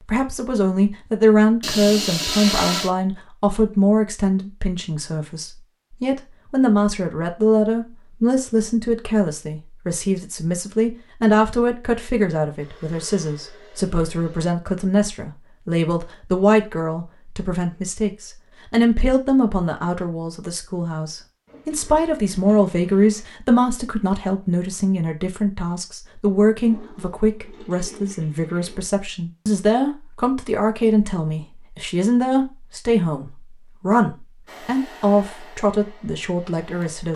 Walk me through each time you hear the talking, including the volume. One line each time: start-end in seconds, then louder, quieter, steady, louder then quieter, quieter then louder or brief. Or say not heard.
0.1-37.1 steady.